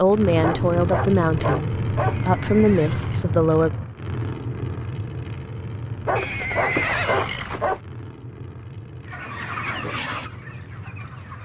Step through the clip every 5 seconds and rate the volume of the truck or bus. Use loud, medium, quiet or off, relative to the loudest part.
loud, medium, quiet.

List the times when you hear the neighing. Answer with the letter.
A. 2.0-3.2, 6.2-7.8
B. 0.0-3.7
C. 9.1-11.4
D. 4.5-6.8
A.